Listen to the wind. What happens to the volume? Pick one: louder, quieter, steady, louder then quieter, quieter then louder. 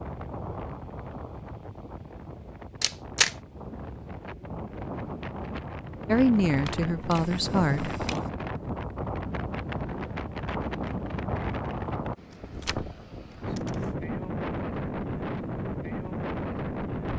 louder.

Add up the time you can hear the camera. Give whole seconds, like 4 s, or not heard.
4 s.